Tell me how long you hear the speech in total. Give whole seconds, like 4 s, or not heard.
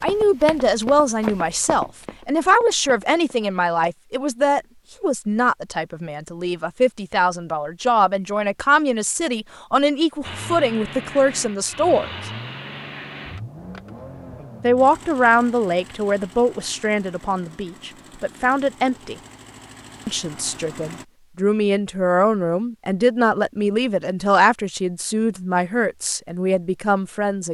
24 s.